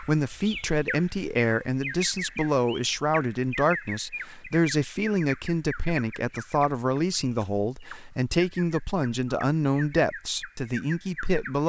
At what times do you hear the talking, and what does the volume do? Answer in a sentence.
You can hear the talking from 0.0 to 11.6 s, at a steady volume.